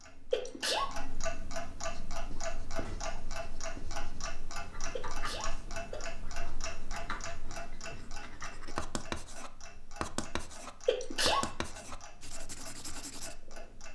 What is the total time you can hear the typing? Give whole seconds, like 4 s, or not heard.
not heard.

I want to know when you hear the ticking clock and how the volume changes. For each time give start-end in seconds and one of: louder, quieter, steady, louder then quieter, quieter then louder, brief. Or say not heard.
0.0-13.8 quieter.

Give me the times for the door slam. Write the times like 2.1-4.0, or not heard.
not heard.